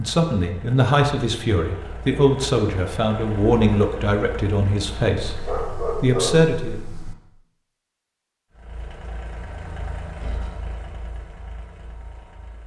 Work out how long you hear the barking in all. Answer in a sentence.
You can hear the barking for 2 seconds altogether.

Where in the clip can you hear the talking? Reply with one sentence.
The talking can be heard from 0.0 to 6.8 s.